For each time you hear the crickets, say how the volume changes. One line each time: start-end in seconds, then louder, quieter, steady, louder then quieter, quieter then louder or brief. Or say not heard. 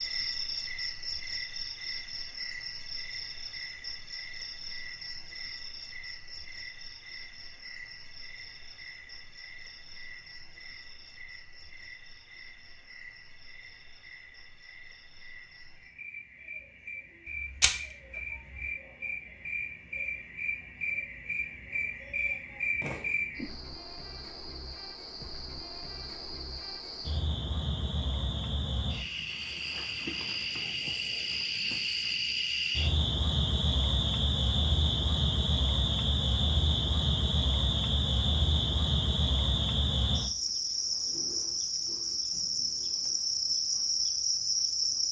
0.0-45.0 quieter then louder.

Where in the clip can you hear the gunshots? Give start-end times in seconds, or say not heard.
17.6-18.6.